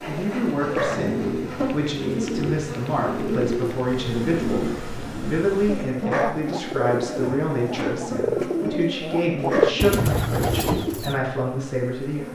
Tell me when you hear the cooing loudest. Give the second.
10 s.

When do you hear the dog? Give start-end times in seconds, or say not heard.
0.6-1.1, 6.0-6.5, 9.3-9.8.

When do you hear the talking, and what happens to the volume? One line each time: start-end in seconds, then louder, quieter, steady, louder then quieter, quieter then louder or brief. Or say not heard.
0.1-12.2 steady.